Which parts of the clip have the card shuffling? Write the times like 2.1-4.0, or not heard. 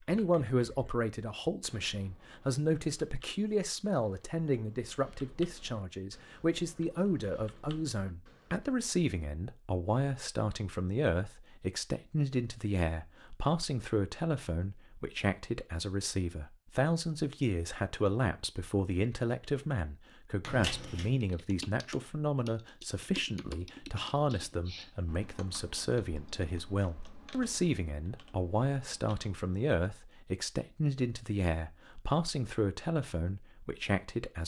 20.4-21.1.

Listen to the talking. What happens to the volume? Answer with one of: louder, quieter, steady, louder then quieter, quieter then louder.
steady.